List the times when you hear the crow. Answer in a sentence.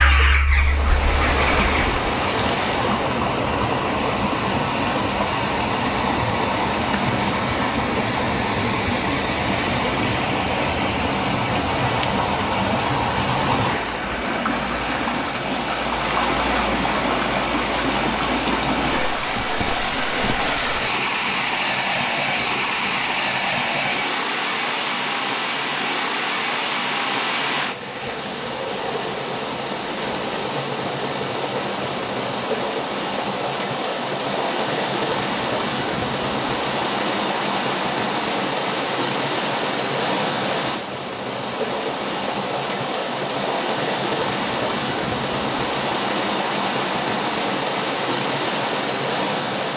The crow can be heard from 0.0 to 1.9 s.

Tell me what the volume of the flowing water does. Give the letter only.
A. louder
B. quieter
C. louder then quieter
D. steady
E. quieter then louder
D.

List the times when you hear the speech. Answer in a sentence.
You can't hear the speech here.